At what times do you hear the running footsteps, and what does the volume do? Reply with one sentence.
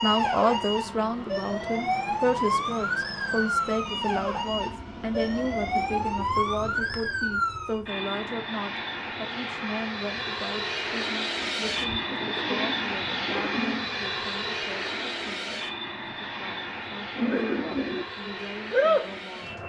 The running footsteps can't be heard in this clip.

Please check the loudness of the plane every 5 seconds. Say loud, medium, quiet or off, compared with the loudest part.
medium, medium, loud, medium.